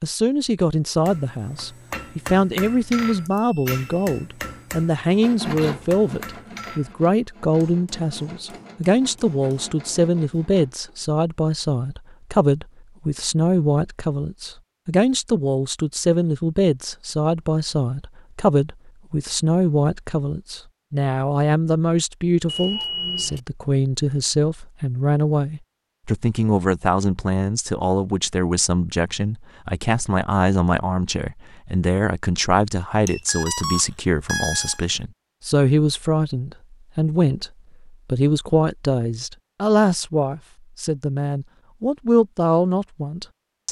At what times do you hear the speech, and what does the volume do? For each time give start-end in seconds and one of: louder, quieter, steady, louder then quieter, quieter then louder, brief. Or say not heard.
0.0-43.6 steady.